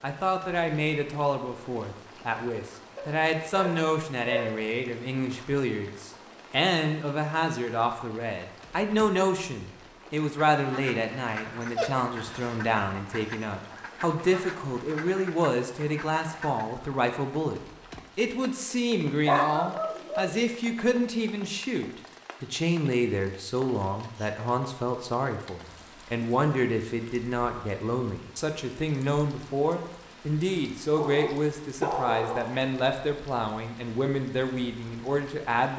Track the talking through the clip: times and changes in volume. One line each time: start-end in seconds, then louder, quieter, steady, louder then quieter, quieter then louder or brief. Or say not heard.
0.0-35.7 steady.